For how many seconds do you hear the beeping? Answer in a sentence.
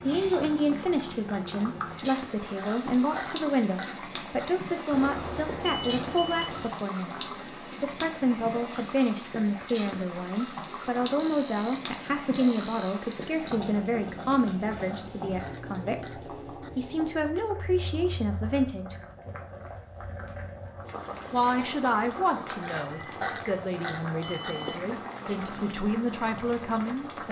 You can hear the beeping for 6 seconds altogether.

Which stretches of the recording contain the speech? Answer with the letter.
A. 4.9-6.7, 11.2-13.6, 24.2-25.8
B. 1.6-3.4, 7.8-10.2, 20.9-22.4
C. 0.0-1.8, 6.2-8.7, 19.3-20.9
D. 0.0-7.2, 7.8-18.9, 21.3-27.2
D.